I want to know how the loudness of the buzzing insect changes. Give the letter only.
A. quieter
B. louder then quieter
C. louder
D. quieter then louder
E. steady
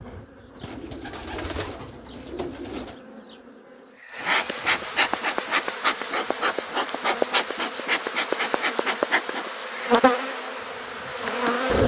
C.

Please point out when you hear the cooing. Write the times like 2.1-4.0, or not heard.
0.6-3.0.